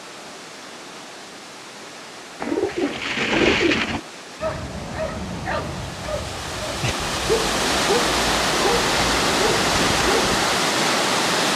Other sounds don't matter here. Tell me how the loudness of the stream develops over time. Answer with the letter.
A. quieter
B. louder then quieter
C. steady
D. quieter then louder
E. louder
E.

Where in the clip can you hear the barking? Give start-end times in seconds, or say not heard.
4.4-10.4.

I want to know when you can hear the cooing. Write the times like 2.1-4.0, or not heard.
2.4-4.0.